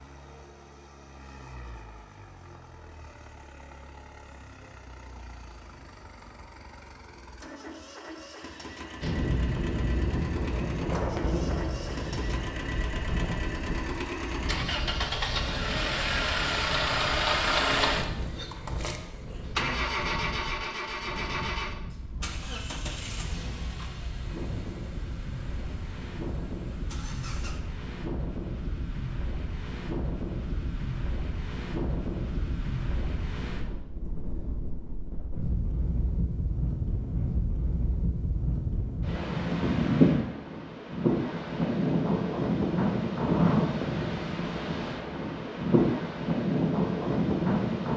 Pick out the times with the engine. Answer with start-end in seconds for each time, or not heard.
0.0-27.8.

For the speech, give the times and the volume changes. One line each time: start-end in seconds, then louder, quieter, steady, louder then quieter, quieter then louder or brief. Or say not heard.
not heard.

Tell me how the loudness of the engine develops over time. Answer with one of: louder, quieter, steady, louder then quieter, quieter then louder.
louder then quieter.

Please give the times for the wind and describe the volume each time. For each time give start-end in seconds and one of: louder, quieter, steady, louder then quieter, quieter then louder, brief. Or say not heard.
9.0-47.9 quieter then louder.